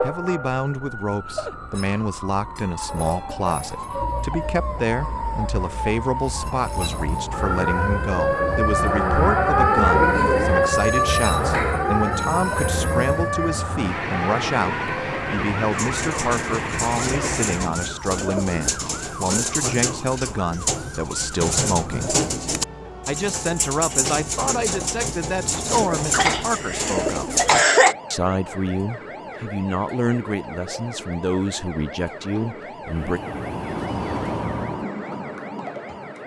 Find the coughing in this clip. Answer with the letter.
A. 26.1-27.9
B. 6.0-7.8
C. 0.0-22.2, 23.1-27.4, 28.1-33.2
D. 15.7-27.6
A.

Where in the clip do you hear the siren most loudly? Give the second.
10 s.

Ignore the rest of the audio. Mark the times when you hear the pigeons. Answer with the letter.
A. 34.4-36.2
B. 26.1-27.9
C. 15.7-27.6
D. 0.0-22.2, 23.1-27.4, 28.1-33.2
C.